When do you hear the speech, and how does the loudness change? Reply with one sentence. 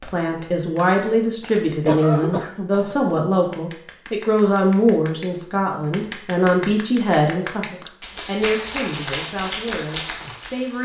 The speech can be heard from 0.0 to 10.8 s, getting quieter.